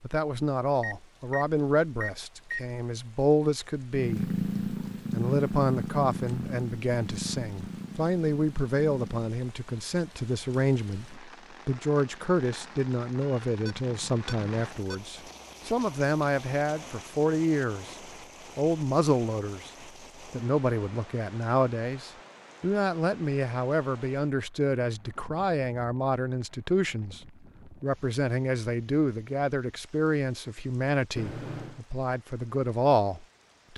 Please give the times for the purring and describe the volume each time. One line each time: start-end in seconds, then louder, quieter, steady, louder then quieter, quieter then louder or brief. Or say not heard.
4.0-9.3 quieter.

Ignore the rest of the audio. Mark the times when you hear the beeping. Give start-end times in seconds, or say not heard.
0.8-2.6, 13.1-15.0, 31.1-31.8.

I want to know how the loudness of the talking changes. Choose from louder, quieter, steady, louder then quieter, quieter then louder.
steady.